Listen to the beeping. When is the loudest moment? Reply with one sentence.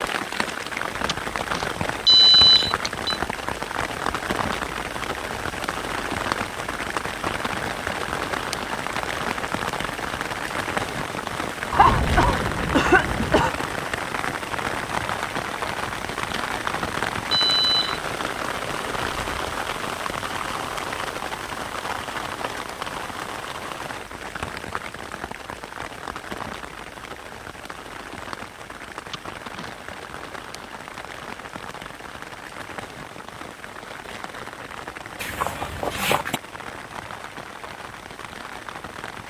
The volume of the beeping peaks at 2 seconds.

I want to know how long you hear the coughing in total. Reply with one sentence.
You can hear the coughing for 3 seconds altogether.